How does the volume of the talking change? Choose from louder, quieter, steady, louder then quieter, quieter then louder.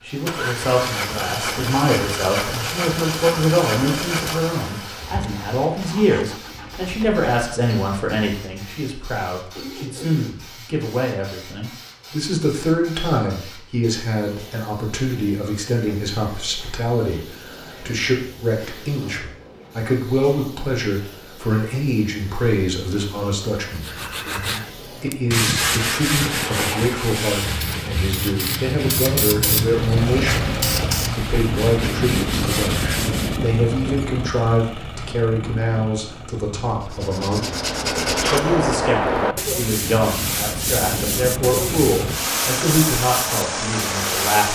steady.